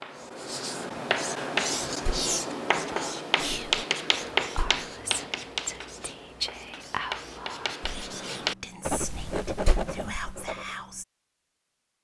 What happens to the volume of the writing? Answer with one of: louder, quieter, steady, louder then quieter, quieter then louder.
quieter then louder.